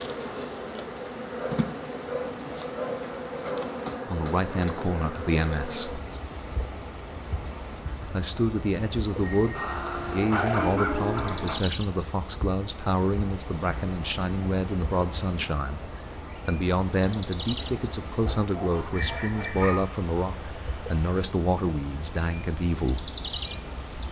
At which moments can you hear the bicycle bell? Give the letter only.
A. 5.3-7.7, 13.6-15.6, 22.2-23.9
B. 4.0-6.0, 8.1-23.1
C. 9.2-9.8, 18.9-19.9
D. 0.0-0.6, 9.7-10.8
C.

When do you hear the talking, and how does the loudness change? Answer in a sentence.
You can hear the talking briefly from 4.0 to 6.0 s; and from 8.1 to 23.1 s, at a steady volume.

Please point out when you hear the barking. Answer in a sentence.
You can hear the barking from 1.4 to 3.7 s, from 9.6 to 11.6 s and from 18.2 to 19.9 s.